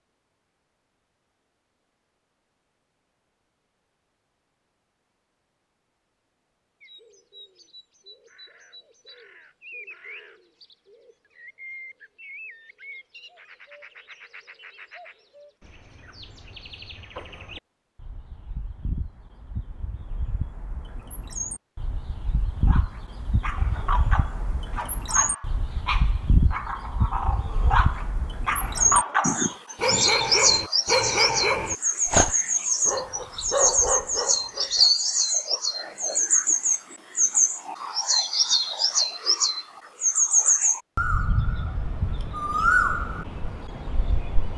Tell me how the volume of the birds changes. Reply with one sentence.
The loudness of the birds goes up.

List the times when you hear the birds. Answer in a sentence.
The birds can be heard from 6.8 to 44.5 s.